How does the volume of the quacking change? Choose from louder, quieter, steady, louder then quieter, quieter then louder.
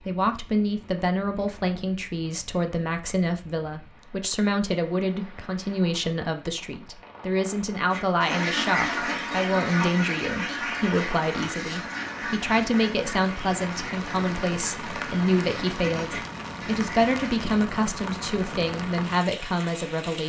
quieter.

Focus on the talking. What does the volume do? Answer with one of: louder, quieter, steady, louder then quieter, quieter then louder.
steady.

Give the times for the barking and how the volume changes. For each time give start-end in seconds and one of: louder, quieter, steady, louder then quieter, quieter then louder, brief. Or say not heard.
not heard.